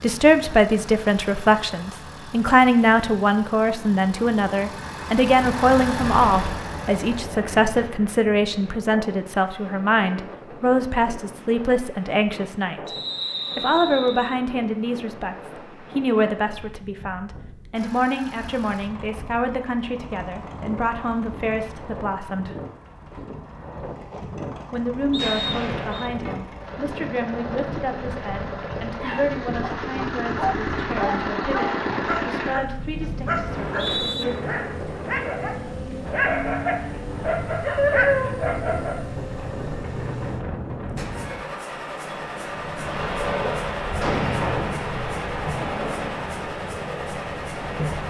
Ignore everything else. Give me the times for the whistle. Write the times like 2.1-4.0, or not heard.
12.8-14.3, 25.1-26.1, 33.5-34.2.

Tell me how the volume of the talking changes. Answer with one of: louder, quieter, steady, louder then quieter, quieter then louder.
quieter.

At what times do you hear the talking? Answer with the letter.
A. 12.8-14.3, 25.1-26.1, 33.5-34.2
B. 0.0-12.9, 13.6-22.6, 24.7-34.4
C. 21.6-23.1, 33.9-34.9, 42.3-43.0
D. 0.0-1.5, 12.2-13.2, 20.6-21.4
B.